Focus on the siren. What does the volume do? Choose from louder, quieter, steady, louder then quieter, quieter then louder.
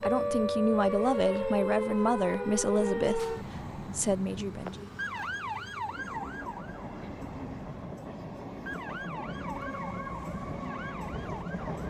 quieter.